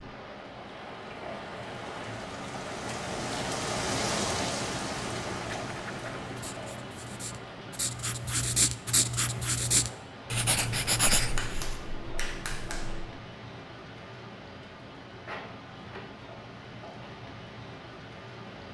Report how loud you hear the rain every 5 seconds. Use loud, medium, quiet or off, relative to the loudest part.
loud, medium, medium, medium.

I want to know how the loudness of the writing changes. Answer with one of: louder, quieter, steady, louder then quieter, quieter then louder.
louder.